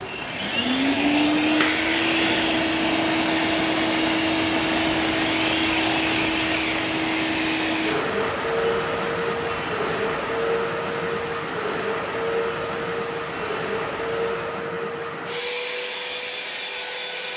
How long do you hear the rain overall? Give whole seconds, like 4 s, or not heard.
15 s.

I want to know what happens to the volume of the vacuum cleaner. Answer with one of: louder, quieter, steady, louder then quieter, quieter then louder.
quieter.